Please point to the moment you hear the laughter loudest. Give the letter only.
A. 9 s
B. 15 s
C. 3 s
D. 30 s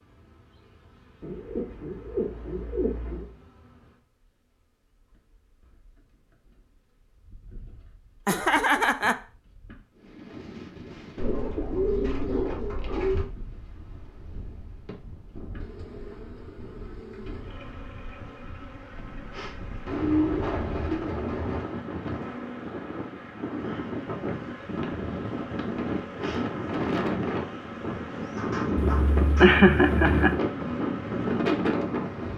D.